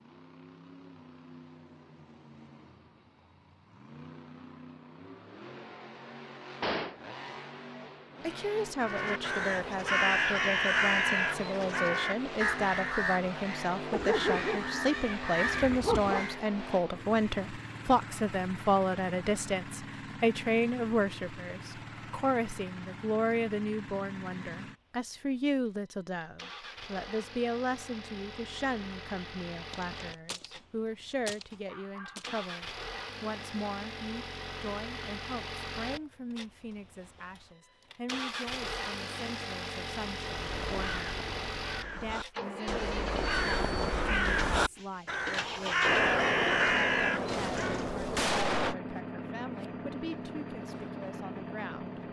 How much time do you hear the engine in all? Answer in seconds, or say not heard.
52 s.